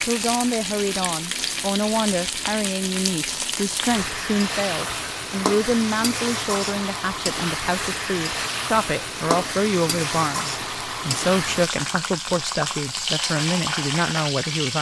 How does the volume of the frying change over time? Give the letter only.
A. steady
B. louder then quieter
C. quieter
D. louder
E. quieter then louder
A.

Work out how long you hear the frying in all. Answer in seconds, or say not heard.
15 s.